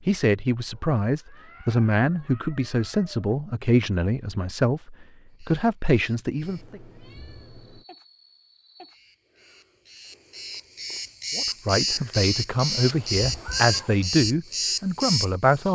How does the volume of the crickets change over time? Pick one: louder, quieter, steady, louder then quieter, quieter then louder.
louder.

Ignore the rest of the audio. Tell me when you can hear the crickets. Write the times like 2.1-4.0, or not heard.
5.3-15.7.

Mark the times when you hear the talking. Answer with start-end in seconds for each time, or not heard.
0.1-6.8, 11.3-15.7.